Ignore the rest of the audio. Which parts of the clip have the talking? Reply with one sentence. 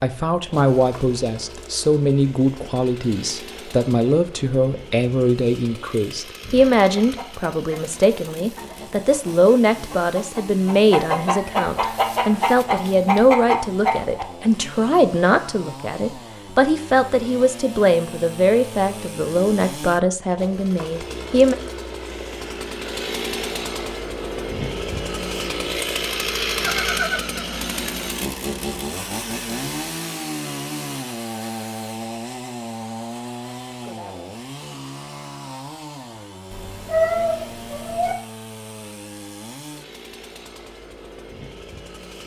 You can hear the talking from 0.0 to 21.6 s.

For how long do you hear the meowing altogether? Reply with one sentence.
The meowing can be heard for 2 seconds in total.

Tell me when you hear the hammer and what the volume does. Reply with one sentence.
The hammer can't be heard in this clip.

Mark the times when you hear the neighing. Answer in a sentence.
The neighing can be heard from 26.6 to 27.6 s.